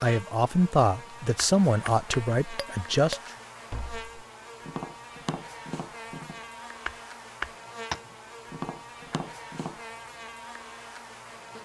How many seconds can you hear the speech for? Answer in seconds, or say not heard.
3 s.